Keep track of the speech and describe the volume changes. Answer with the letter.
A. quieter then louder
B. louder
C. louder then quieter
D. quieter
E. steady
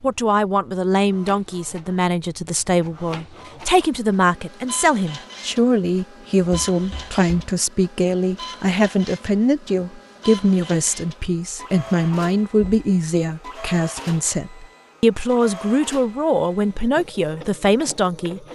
E.